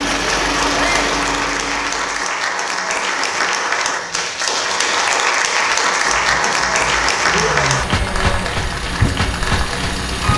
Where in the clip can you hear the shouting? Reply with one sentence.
You can hear the shouting from 0.7 to 1.1 s and from 7.3 to 8.6 s.